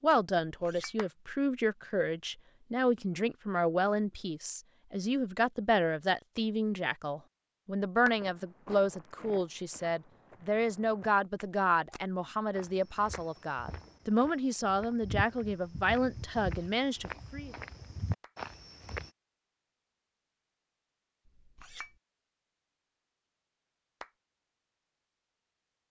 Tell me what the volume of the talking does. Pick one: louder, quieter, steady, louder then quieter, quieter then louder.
steady.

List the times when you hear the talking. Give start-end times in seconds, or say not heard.
0.0-17.6.